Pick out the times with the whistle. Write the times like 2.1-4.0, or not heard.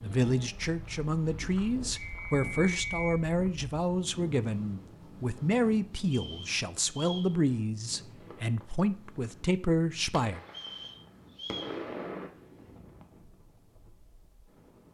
1.9-3.1, 6.1-7.3, 10.5-11.8.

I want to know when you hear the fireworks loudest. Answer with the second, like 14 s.
12 s.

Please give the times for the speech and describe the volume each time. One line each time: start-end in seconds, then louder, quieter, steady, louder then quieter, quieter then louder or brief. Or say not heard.
0.0-10.4 steady.